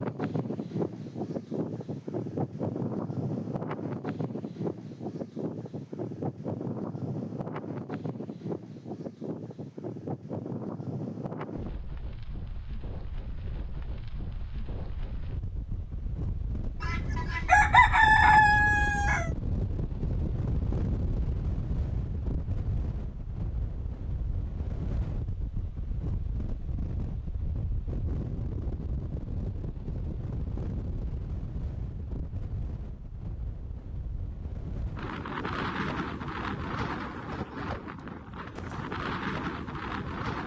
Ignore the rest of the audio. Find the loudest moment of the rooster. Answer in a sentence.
The loudest moment of the rooster is at 18 seconds.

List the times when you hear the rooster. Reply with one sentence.
The rooster can be heard from 16.8 to 19.3 s.